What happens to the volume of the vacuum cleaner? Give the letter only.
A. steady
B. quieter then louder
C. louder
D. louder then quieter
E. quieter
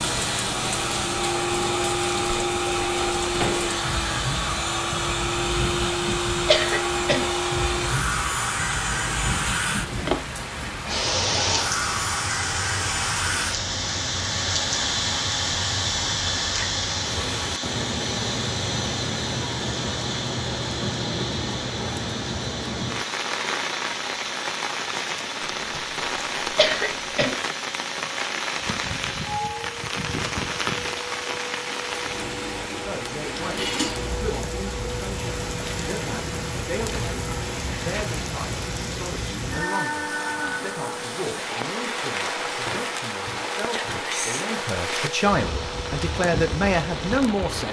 E.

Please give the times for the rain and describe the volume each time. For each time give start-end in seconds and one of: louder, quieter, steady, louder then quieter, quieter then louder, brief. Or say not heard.
0.0-47.6 steady.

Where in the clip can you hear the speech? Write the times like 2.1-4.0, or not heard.
32.7-47.6.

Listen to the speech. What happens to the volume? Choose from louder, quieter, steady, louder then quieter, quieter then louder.
louder.